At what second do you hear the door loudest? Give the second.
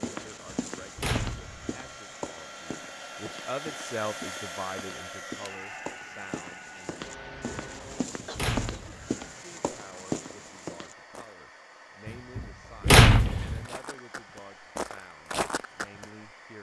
13 s.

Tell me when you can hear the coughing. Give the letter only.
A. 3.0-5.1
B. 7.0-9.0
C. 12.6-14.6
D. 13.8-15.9
B.